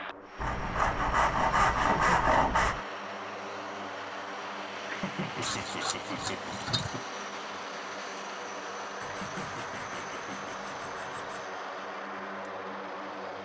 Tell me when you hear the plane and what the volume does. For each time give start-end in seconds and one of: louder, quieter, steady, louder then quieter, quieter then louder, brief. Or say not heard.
0.0-13.3 steady.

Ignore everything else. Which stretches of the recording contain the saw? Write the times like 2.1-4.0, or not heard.
0.3-2.9, 5.4-6.9, 9.0-11.4.